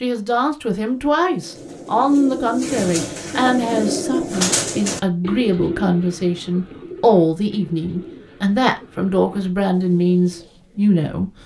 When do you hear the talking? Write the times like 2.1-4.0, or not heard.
0.0-11.3.